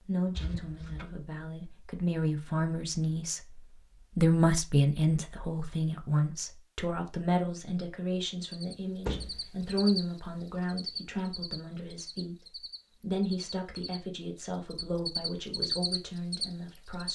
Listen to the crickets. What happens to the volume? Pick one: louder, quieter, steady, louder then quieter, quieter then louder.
quieter then louder.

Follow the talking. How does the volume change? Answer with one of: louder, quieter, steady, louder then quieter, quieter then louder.
louder then quieter.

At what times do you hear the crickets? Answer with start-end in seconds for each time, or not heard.
8.4-17.1.